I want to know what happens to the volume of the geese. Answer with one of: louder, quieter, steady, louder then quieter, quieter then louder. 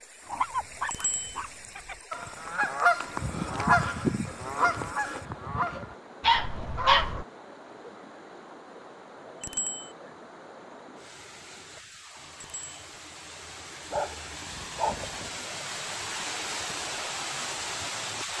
quieter.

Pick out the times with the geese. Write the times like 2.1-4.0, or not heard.
1.8-7.2.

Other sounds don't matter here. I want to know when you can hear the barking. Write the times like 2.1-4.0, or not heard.
0.2-1.5, 6.2-7.2, 13.9-15.3.